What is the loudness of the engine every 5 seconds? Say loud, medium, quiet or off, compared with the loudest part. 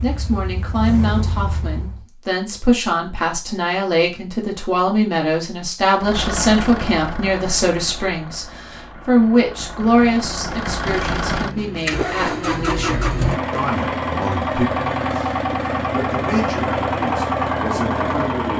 medium, medium, loud, loud.